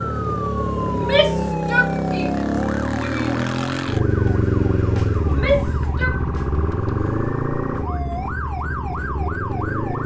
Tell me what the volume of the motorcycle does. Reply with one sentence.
The volume of the motorcycle goes down.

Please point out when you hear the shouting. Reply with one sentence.
The shouting can be heard from 0.9 to 3.5 s and from 5.2 to 6.2 s.